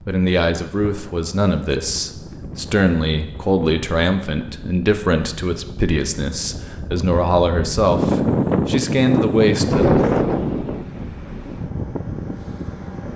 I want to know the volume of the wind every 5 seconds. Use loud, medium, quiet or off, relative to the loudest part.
quiet, loud, loud.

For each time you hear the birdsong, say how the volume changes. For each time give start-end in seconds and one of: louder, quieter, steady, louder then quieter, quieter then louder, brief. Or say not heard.
not heard.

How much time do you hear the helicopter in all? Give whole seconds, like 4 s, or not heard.
2 s.